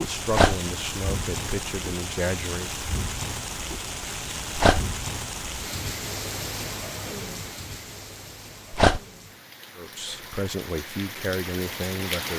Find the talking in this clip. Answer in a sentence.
The talking can be heard from 0.0 to 2.8 s and from 9.8 to 12.3 s.